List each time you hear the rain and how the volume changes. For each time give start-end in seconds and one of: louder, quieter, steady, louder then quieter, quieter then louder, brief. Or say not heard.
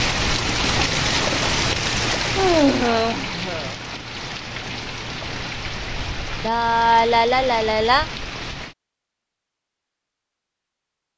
0.0-8.8 quieter.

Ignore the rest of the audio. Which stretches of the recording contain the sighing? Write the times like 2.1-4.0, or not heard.
2.2-3.8, 6.4-8.1.